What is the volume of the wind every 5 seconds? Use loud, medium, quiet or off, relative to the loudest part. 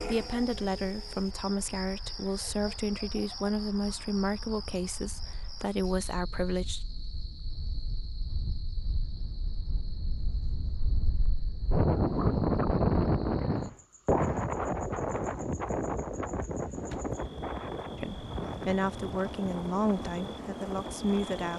quiet, quiet, loud, medium, quiet.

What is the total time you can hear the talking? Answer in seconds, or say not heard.
10 s.